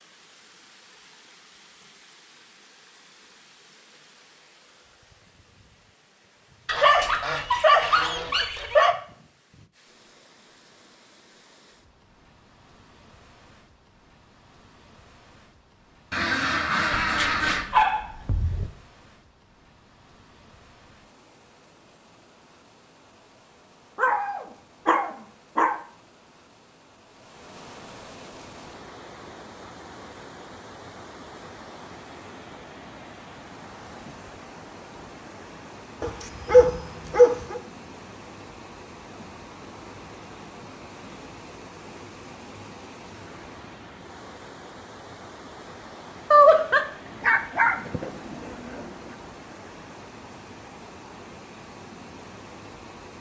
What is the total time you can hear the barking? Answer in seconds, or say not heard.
10 s.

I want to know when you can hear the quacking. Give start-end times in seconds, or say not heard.
16.1-17.7.